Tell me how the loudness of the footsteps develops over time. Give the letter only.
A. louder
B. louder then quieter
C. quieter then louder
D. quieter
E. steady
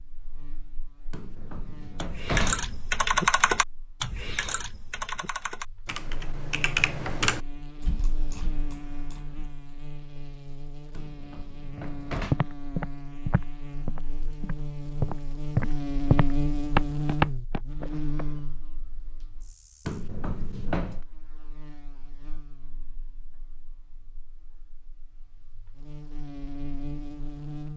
C.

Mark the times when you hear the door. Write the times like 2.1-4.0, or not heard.
1.1-2.8, 10.9-12.4, 19.9-21.0.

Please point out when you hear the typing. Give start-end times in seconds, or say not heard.
2.0-9.5.